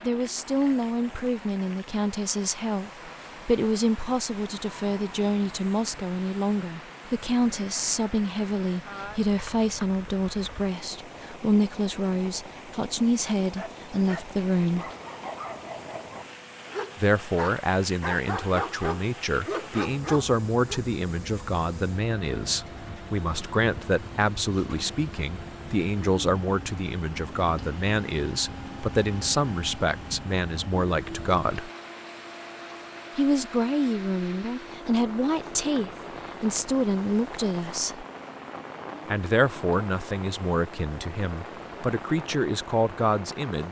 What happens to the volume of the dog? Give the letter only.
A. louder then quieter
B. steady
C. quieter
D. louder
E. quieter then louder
D.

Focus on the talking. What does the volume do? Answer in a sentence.
The volume of the talking stays about the same.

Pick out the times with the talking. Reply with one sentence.
You can hear the talking from 0.0 to 14.9 s, from 16.9 to 31.7 s, from 33.1 to 38.0 s and from 39.1 to 43.6 s.